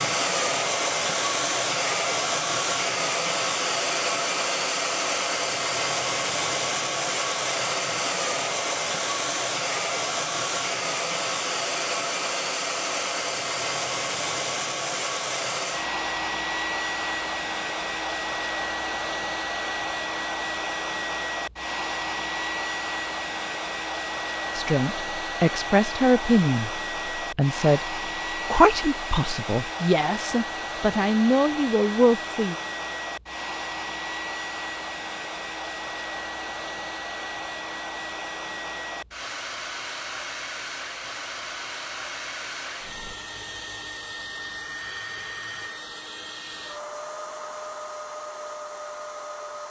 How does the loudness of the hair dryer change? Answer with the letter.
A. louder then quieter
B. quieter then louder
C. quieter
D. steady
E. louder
C.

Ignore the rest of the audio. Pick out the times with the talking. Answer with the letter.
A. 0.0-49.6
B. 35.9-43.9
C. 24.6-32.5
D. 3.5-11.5
C.